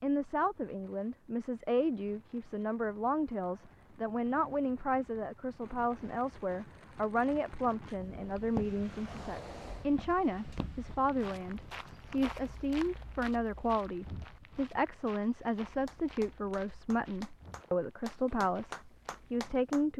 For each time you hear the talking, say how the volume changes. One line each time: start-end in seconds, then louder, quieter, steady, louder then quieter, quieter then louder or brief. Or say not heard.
0.0-19.9 steady.